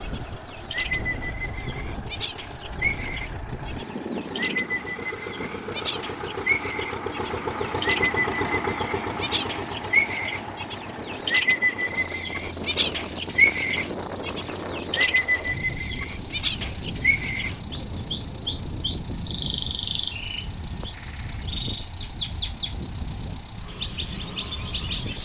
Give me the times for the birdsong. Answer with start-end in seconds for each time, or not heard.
0.0-25.2.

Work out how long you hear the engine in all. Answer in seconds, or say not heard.
25 s.